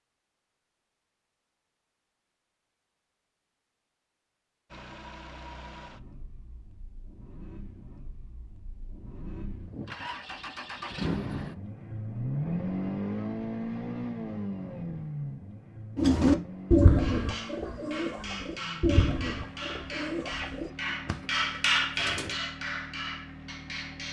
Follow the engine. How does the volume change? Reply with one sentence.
The loudness of the engine goes up, then down.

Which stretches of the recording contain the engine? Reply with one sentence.
The engine can be heard from 4.7 to 24.0 s.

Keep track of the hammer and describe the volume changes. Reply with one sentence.
The volume of the hammer goes up, then down.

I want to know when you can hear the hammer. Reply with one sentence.
You can hear the hammer from 16.9 to 24.0 s.